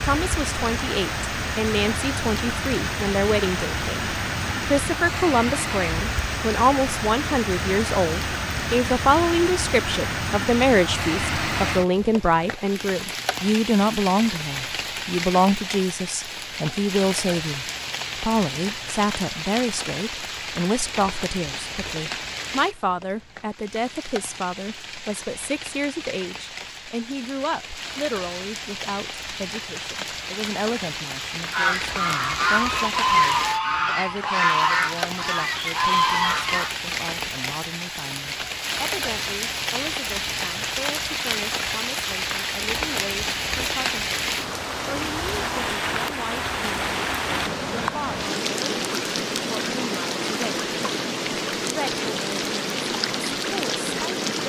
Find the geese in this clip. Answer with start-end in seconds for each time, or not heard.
31.5-36.7.